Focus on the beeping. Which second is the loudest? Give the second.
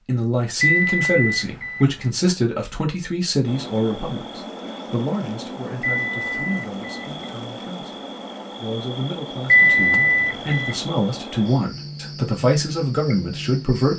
10 s.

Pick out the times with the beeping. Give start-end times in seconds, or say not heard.
0.6-2.1, 5.8-7.1, 9.5-10.8.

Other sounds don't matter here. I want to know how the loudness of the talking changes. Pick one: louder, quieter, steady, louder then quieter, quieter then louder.
quieter then louder.